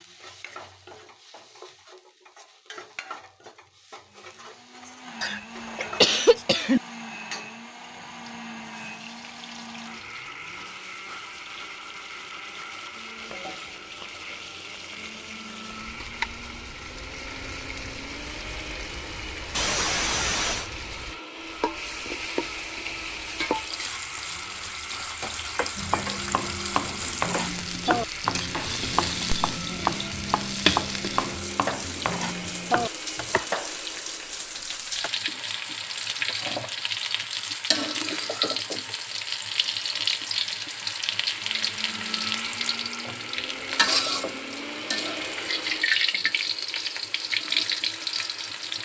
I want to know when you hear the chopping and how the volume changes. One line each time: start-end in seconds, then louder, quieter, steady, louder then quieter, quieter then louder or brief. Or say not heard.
25.8-33.5 steady.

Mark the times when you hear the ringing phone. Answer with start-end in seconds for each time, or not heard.
not heard.